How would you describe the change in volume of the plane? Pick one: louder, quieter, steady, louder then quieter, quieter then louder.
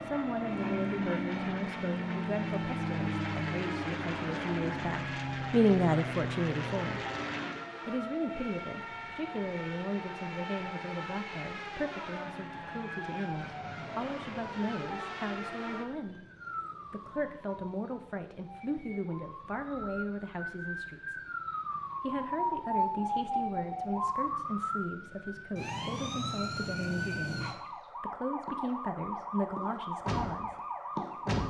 steady.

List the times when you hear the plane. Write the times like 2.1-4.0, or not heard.
0.0-7.7.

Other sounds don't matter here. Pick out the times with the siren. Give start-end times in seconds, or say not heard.
0.0-31.4.